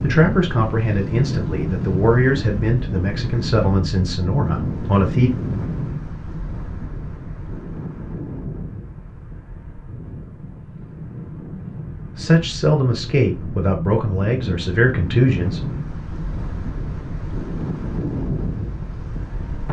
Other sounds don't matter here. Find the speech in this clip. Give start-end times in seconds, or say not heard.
0.0-5.3, 12.2-15.8.